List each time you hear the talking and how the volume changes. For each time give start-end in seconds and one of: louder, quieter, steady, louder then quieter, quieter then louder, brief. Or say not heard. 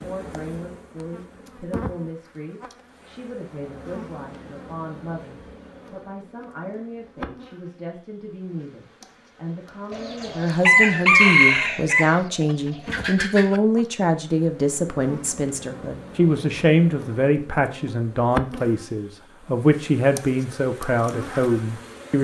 0.0-22.2 louder.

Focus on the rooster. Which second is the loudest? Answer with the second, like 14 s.
11 s.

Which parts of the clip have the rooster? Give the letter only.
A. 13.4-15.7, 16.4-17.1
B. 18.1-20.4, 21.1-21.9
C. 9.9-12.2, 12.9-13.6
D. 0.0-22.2
C.